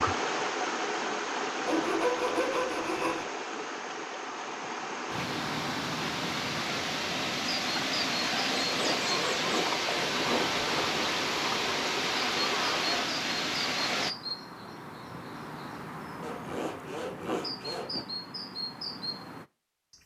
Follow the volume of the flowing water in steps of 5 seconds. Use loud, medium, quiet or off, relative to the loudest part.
loud, loud, loud, off.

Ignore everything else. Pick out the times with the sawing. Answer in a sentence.
You can hear the sawing from 1.6 to 3.2 s, from 8.6 to 11.2 s and from 16.2 to 18.1 s.